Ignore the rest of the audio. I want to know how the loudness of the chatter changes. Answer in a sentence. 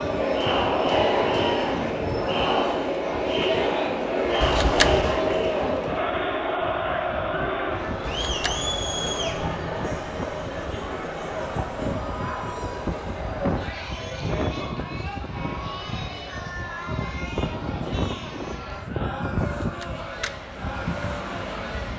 The volume of the chatter goes down.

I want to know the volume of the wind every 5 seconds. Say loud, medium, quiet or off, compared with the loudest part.
medium, medium, loud, loud, loud.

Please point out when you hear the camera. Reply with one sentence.
You can hear the camera from 4.4 to 5.2 s, from 8.1 to 8.8 s and from 19.6 to 20.3 s.